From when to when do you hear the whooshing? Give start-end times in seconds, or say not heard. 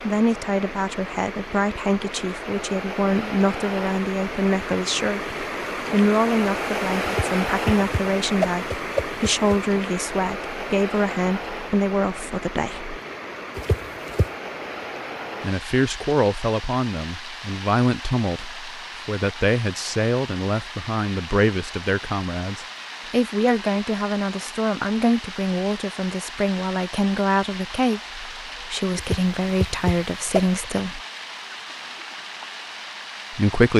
7.0-9.6, 13.6-14.3, 28.9-30.6.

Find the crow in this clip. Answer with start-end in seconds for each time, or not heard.
not heard.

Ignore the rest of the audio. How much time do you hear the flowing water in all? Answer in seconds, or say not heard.
34 s.